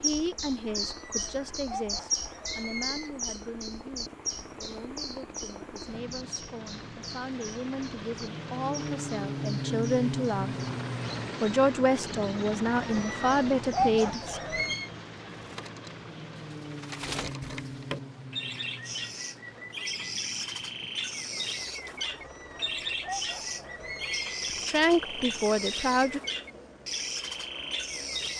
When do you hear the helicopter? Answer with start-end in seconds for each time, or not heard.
0.0-28.3.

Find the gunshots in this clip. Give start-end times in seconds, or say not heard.
not heard.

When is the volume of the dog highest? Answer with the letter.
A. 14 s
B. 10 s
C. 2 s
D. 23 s
A.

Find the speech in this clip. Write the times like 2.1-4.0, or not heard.
0.0-10.6, 11.4-14.4, 24.6-26.2.